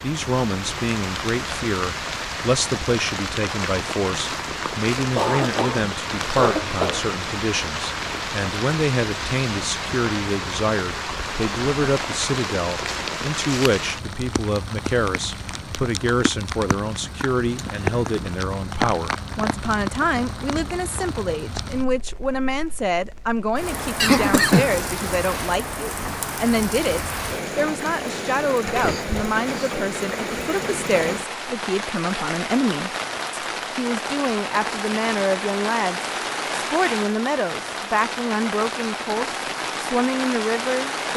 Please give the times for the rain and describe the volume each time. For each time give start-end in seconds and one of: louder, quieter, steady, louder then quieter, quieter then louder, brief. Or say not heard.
0.0-41.1 steady.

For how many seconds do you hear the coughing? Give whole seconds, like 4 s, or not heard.
4 s.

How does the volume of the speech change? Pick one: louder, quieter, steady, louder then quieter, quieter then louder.
steady.